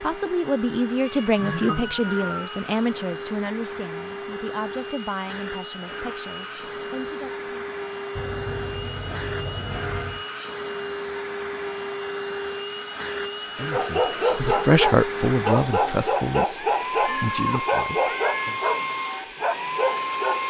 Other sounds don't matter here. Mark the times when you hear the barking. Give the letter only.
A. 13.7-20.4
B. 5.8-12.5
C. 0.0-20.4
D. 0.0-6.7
A.